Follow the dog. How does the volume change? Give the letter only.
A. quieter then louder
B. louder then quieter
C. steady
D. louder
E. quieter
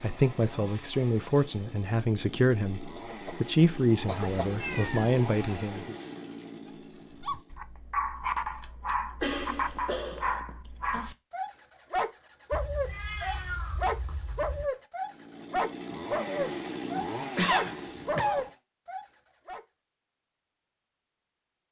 C.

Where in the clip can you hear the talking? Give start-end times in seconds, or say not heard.
0.0-6.0.